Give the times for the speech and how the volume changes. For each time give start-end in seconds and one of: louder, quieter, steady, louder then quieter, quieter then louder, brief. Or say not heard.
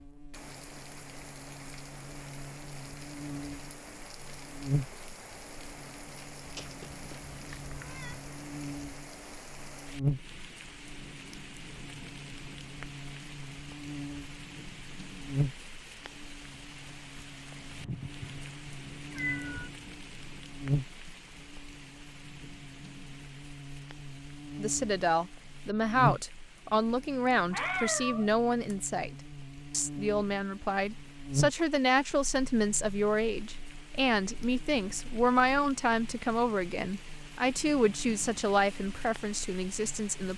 24.6-40.3 steady.